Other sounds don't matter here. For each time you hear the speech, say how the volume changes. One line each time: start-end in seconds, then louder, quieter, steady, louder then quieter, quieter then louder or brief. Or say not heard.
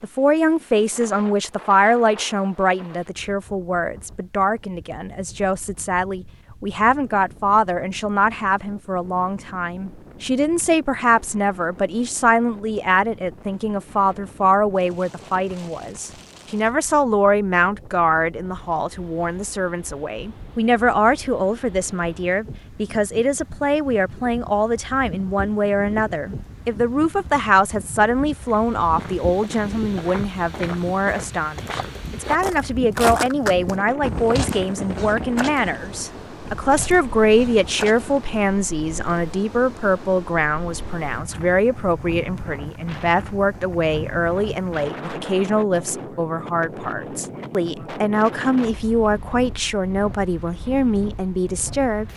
0.0-52.0 steady.